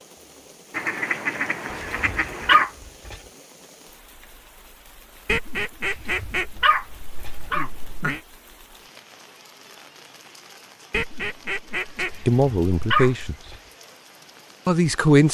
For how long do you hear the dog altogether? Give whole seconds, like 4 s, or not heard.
5 s.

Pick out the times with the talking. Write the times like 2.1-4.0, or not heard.
12.0-13.3, 14.7-15.2.